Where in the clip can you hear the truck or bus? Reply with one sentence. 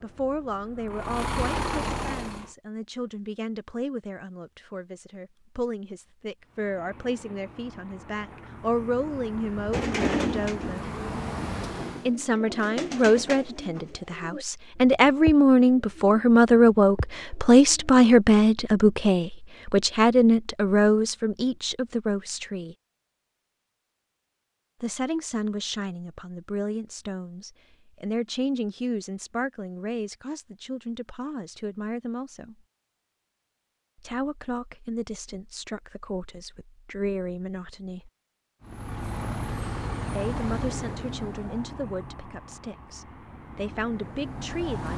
The truck or bus can be heard from 0.0 to 2.5 s, from 6.4 to 12.2 s and from 38.6 to 44.9 s.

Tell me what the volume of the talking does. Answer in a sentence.
The volume of the talking goes up, then down.